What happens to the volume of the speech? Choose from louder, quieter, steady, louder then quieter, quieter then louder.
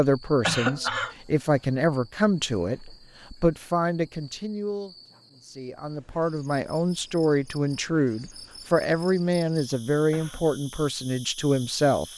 steady.